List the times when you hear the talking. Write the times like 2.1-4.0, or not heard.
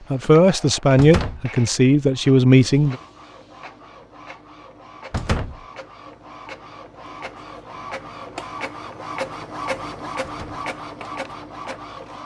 0.1-3.0.